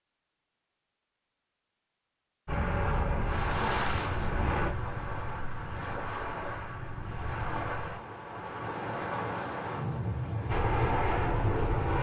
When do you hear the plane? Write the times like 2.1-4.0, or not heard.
2.5-4.7, 10.4-11.9.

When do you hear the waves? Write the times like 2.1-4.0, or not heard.
3.2-11.9.